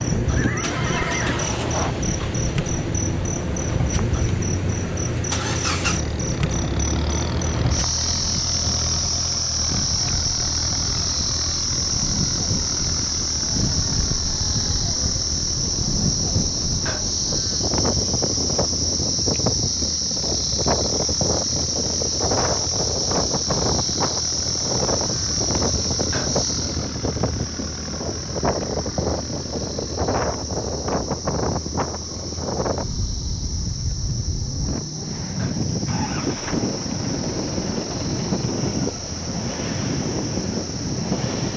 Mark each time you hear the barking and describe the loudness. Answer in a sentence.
The barking can't be heard in this clip.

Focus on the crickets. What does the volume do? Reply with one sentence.
The volume of the crickets goes down.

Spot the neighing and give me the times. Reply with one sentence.
You can hear the neighing from 0.3 to 1.6 s.